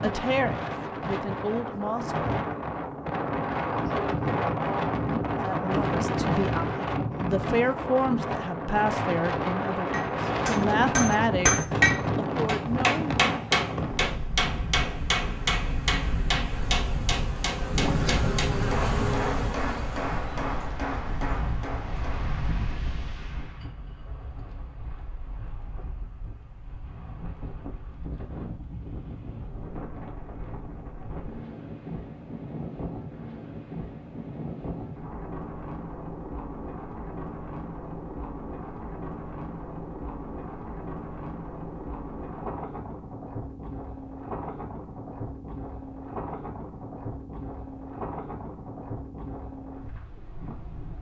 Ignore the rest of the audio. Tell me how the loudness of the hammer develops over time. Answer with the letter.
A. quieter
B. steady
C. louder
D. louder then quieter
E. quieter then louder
A.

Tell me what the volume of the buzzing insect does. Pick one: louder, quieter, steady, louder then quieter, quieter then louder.
louder.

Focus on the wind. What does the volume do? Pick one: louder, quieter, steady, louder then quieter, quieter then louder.
quieter.